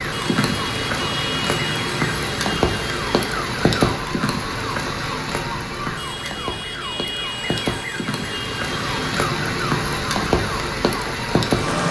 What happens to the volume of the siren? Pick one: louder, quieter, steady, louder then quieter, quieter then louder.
steady.